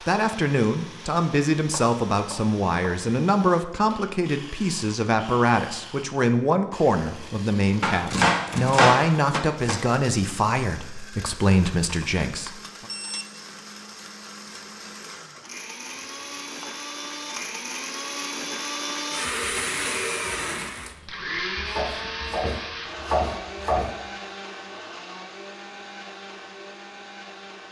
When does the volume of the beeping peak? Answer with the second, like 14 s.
13 s.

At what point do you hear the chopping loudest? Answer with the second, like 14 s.
9 s.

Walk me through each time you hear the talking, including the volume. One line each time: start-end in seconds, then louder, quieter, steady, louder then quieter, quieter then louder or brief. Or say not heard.
0.1-12.8 steady.